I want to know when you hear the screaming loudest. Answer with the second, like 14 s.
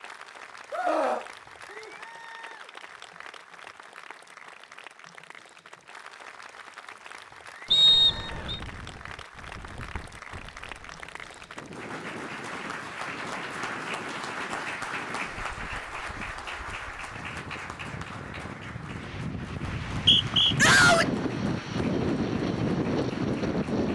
21 s.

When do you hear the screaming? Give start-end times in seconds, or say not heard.
0.7-1.9, 20.6-21.1.